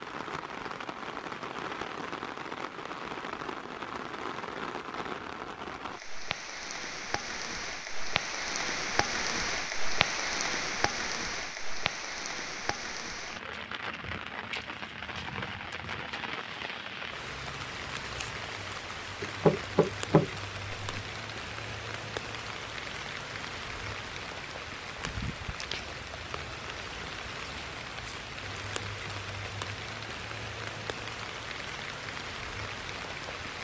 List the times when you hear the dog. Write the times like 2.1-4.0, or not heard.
not heard.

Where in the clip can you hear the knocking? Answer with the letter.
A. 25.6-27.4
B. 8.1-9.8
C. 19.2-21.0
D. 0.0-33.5
C.